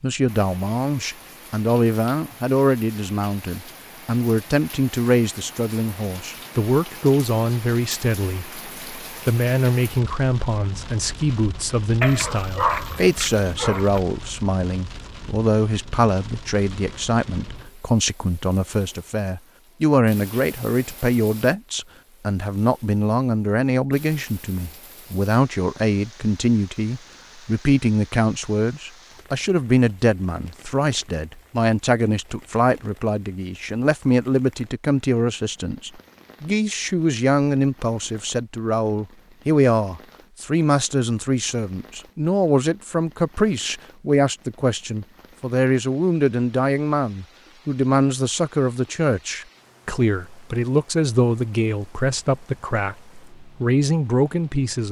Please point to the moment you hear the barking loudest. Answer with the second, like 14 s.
13 s.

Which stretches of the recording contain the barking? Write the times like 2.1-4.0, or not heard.
12.0-14.0.